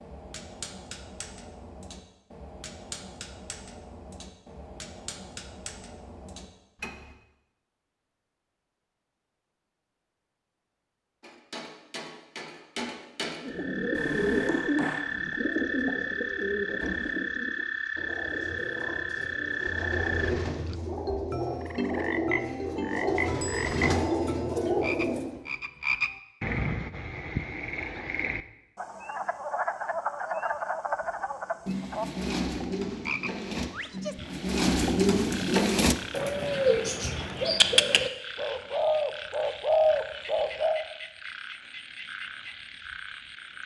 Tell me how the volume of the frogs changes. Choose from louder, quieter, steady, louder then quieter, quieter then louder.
quieter.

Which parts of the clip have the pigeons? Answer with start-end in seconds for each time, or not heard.
13.4-25.4, 31.6-40.9.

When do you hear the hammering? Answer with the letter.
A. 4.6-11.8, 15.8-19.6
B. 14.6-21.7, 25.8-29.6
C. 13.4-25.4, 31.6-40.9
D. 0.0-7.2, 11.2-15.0
D.